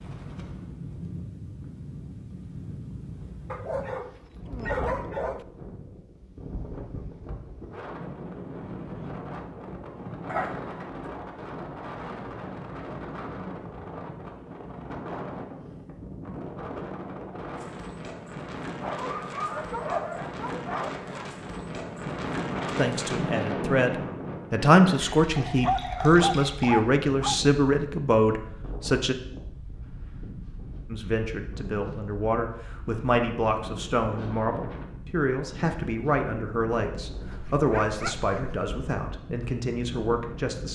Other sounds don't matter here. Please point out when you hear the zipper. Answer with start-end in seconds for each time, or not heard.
not heard.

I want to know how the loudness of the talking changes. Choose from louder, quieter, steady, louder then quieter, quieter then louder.
quieter.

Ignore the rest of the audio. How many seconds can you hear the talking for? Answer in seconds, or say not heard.
16 s.